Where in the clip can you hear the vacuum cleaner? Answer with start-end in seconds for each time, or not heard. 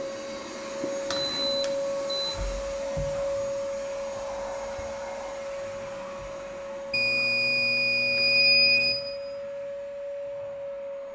0.0-11.0.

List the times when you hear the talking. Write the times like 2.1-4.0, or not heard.
not heard.